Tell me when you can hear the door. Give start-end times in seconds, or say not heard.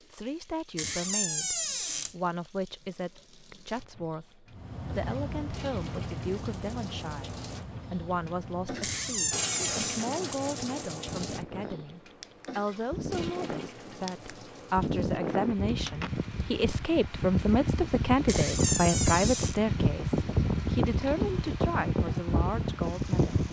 0.8-2.1, 8.8-10.1, 18.2-19.6.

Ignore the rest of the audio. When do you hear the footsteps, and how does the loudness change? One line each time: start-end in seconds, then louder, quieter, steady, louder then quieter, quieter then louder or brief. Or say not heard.
not heard.